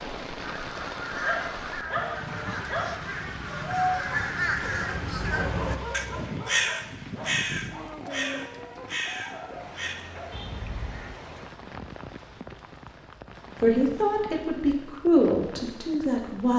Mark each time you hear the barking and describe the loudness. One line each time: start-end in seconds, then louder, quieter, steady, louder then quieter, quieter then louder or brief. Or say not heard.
1.2-10.4 quieter.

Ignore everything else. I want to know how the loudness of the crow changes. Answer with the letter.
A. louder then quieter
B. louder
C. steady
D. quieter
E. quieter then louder
A.